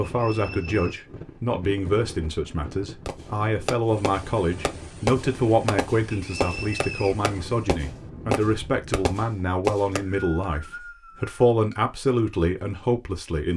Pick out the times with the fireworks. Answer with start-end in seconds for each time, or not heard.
3.0-10.4.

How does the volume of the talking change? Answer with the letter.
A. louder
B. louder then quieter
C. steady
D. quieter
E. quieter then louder
C.